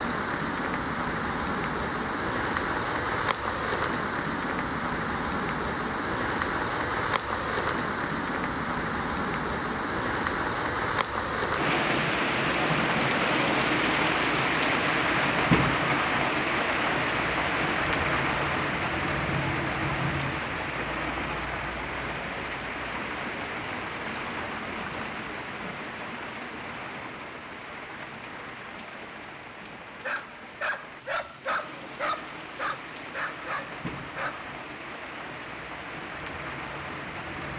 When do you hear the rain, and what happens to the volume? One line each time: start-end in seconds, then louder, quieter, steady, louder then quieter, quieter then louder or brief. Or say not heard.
0.0-37.5 quieter.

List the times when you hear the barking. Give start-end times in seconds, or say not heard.
30.0-34.5.